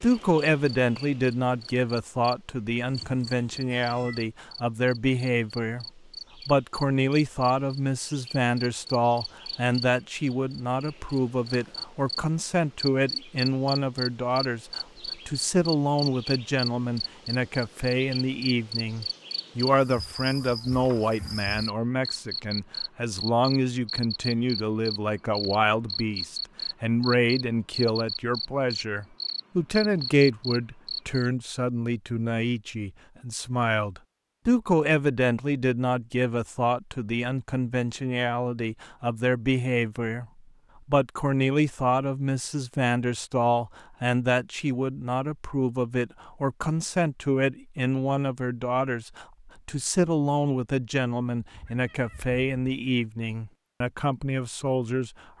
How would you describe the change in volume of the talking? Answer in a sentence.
The volume of the talking stays about the same.